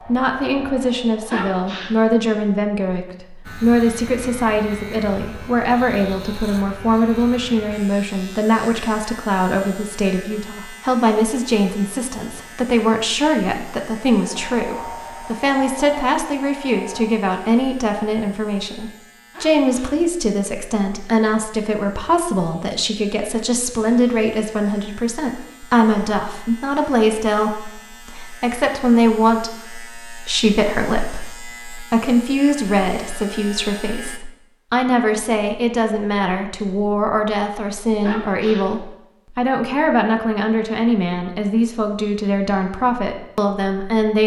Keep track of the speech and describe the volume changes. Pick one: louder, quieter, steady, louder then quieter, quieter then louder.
steady.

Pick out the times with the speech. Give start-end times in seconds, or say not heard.
0.1-44.2.